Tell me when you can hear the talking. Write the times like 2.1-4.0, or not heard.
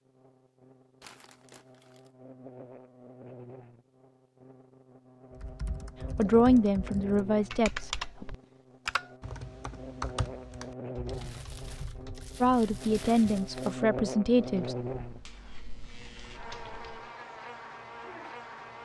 6.2-8.3, 12.4-14.8.